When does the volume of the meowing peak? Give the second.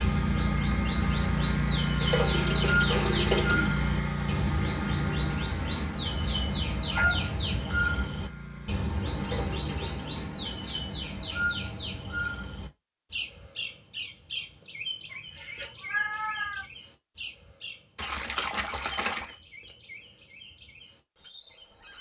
16 s.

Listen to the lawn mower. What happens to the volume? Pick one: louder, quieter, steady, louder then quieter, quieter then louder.
quieter.